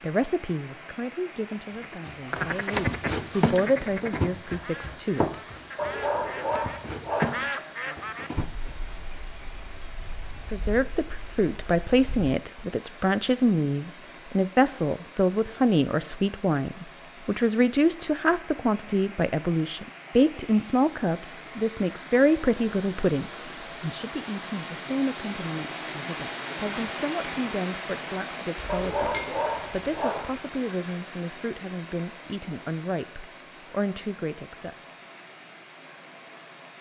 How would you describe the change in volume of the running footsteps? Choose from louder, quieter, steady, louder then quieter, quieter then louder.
quieter then louder.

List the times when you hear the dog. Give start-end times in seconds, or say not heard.
5.8-7.5, 28.6-30.4.